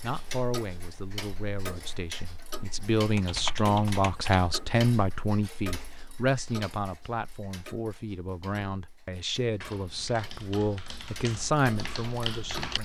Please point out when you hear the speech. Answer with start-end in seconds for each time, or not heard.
0.0-12.7.